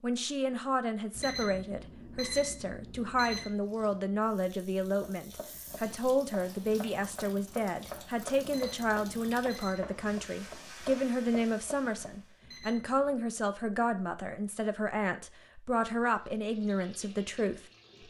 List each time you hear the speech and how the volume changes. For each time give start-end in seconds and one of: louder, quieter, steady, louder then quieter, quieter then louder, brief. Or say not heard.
0.0-17.6 steady.